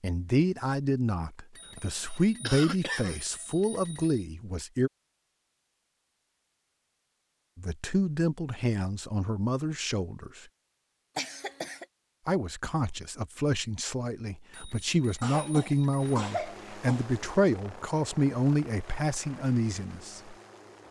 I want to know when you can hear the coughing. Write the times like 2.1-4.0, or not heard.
1.8-3.2, 11.2-11.8, 15.2-17.1.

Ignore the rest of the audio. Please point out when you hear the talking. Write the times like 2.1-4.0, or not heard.
0.0-4.9, 7.5-10.4, 12.2-20.4.